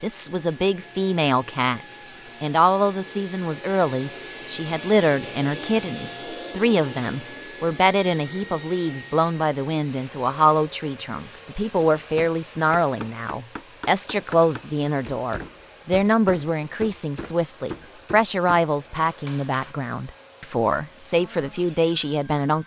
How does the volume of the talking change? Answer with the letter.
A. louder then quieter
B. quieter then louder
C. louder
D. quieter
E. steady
E.